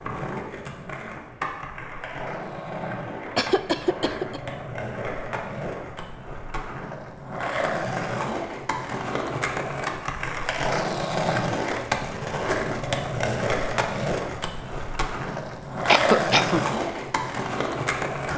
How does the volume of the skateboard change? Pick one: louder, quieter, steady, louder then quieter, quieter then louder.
louder.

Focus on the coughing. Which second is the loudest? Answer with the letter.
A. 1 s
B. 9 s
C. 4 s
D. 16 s
D.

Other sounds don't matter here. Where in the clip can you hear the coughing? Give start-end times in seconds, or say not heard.
3.4-4.4, 15.8-16.6.